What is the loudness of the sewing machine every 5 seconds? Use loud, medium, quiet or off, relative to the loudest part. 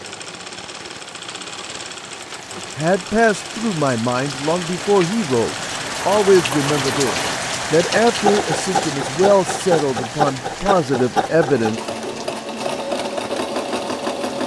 medium, loud, loud.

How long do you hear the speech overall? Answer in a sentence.
You can hear the speech for 9 seconds altogether.